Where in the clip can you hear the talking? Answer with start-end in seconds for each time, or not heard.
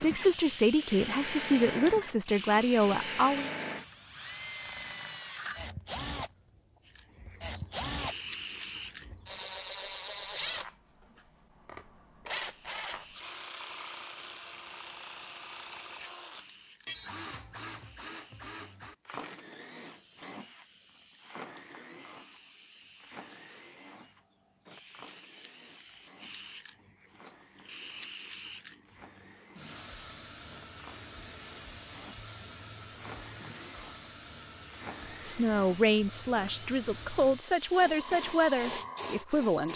0.0-3.5, 35.2-39.7.